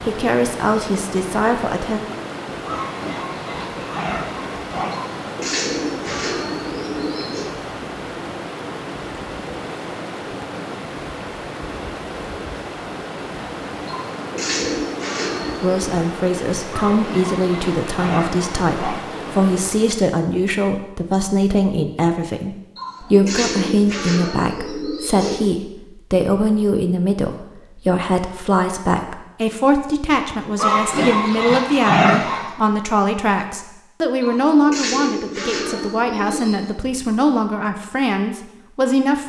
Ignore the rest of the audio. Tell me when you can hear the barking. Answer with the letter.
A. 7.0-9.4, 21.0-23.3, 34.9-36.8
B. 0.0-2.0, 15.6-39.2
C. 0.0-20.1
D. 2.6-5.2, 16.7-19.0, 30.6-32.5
D.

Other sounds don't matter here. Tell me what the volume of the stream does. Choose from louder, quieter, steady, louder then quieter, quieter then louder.
steady.